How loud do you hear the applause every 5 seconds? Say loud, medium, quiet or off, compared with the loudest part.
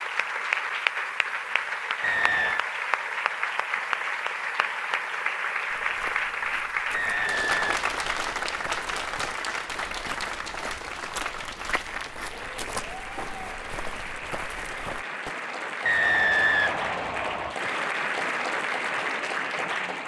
loud, loud, medium, loud.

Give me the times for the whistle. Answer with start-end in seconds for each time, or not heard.
2.0-2.6, 6.9-7.8, 15.8-17.6.